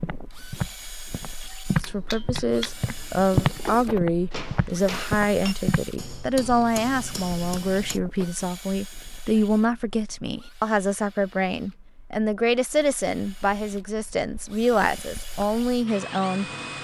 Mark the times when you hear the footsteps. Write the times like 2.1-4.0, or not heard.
0.0-5.8.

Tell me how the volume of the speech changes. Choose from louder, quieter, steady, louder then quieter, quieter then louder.
steady.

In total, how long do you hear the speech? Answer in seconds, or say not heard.
15 s.